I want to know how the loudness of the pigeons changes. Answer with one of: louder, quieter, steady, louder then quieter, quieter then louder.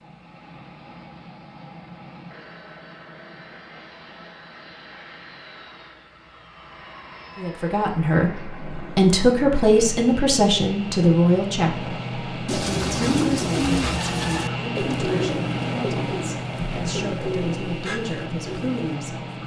quieter.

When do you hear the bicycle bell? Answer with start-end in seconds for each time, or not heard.
not heard.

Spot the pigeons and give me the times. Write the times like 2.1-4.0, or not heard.
12.4-18.8.